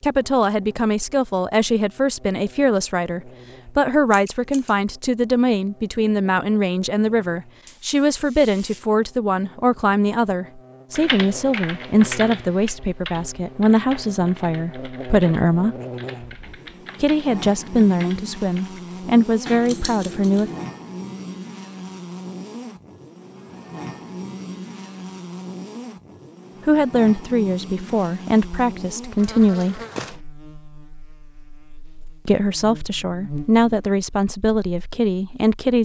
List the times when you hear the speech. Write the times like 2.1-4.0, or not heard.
0.0-15.8, 17.0-20.5, 26.6-29.8, 32.2-35.8.